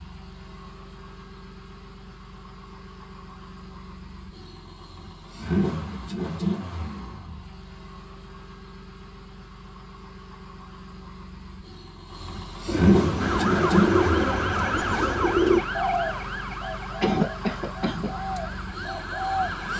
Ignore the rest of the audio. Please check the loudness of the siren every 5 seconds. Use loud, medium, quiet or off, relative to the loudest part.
off, off, loud, medium.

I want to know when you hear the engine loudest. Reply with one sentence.
The loudest moment of the engine is at 13 seconds.